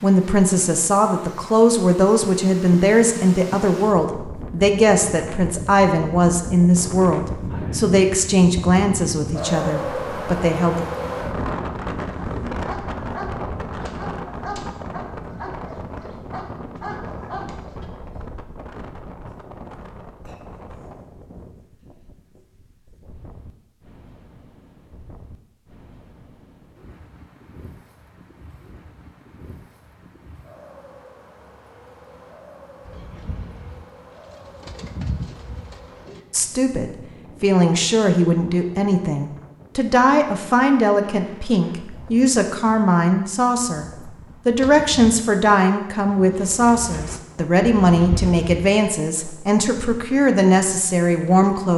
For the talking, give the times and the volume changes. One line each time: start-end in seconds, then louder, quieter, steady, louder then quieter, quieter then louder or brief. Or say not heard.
0.0-10.8 steady
36.3-51.7 steady.